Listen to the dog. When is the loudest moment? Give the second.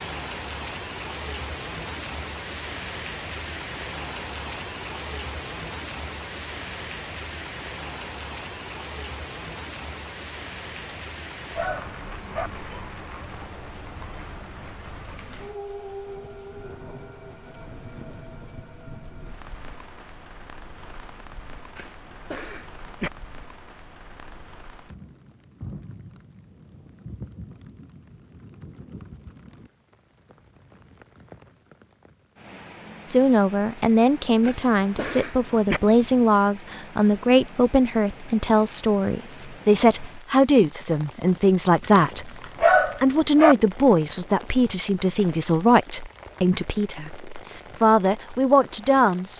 43 s.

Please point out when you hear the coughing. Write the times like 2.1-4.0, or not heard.
21.8-23.1, 34.4-35.8.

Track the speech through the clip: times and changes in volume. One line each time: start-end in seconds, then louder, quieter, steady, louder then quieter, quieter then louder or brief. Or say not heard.
33.0-49.3 steady.